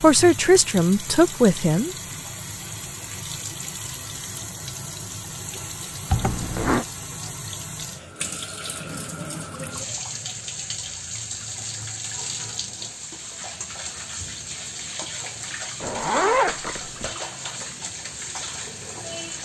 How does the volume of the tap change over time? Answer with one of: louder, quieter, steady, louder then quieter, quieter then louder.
steady.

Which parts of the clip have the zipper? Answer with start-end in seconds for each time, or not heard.
6.1-6.8, 15.8-17.1.